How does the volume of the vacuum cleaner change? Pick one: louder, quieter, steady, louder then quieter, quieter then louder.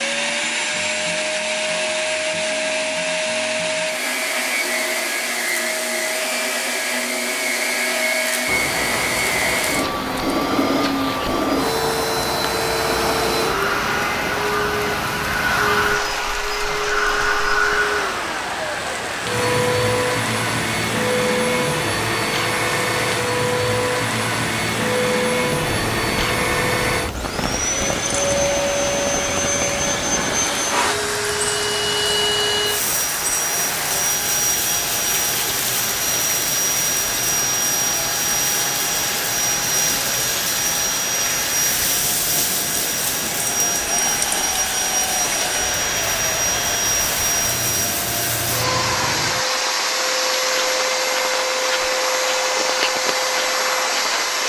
steady.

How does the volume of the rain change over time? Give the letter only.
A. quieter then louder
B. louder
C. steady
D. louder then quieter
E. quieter
C.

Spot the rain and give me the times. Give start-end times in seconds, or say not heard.
8.4-54.4.